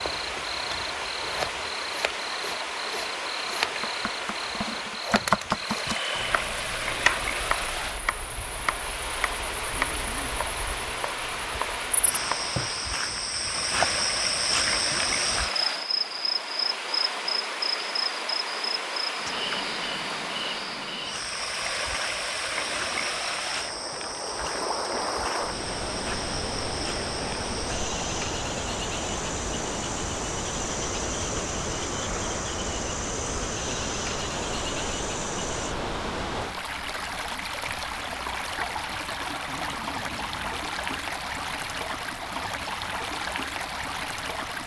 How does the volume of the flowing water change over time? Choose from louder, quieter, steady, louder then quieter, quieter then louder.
steady.